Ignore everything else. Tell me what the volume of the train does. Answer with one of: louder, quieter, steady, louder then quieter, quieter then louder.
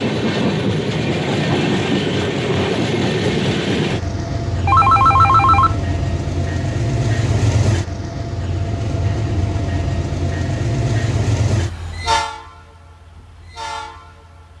quieter.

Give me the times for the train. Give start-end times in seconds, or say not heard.
0.0-14.5.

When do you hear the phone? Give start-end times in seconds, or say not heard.
4.7-5.8.